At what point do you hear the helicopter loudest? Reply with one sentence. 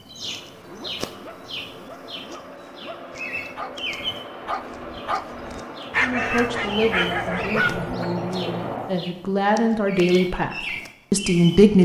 The loudest moment of the helicopter is at 8 seconds.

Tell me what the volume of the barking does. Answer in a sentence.
The loudness of the barking goes up.